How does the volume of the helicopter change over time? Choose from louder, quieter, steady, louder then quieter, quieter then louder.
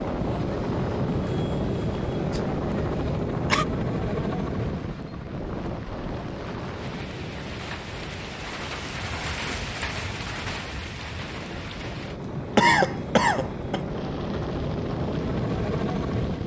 quieter then louder.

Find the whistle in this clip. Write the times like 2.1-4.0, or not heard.
not heard.